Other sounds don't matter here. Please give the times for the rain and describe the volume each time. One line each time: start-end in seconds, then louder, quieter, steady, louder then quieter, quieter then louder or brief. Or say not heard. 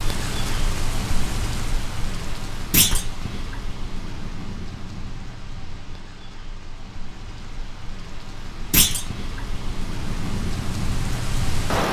0.0-11.8 quieter then louder.